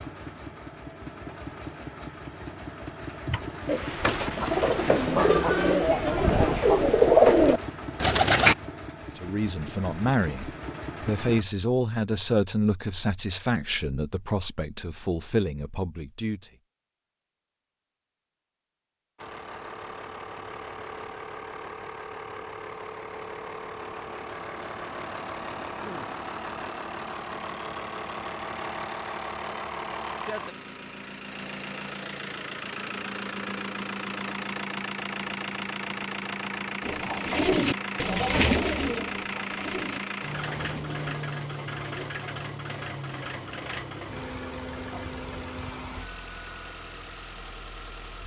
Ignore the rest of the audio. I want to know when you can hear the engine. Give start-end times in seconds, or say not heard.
0.0-11.4, 19.1-48.2.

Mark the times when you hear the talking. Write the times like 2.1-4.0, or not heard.
9.1-16.5.